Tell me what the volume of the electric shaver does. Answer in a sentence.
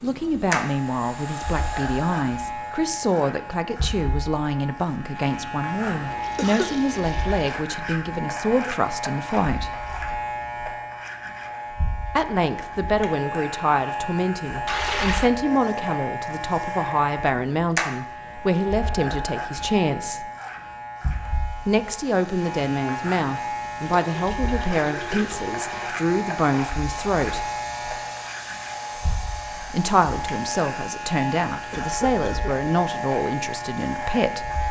The loudness of the electric shaver stays about the same.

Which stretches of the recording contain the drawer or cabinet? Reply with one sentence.
You can't hear the drawer or cabinet here.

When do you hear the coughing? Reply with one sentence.
You can hear the coughing from 6.3 to 6.8 s and from 31.7 to 32.7 s.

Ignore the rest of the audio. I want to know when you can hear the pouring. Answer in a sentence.
You can hear the pouring from 5.9 to 7.6 s, from 14.7 to 15.3 s and from 23.8 to 26.1 s.